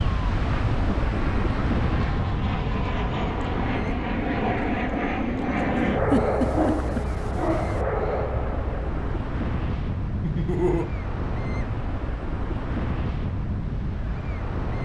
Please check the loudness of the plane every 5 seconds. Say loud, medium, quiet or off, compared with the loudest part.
loud, loud, off.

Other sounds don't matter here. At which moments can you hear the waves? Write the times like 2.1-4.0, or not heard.
0.0-14.8.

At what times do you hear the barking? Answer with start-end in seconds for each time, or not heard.
6.4-7.8.